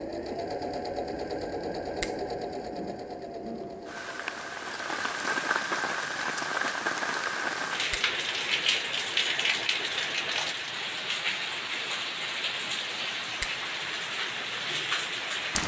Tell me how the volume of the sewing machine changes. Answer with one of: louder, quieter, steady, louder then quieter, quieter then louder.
quieter.